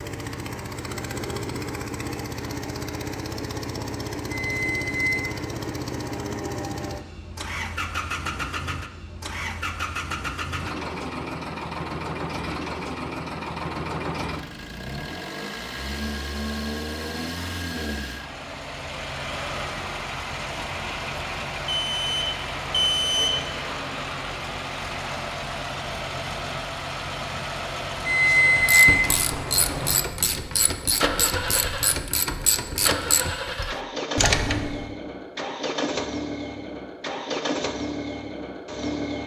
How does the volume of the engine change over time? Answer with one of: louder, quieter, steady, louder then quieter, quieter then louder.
steady.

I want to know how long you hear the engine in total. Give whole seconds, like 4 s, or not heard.
39 s.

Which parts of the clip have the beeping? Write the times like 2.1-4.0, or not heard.
4.3-5.2, 21.6-23.3, 28.1-29.1.